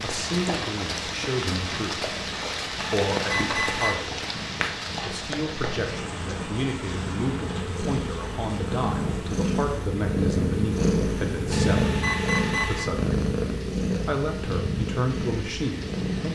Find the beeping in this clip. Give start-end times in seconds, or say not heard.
3.0-4.0, 11.5-12.9.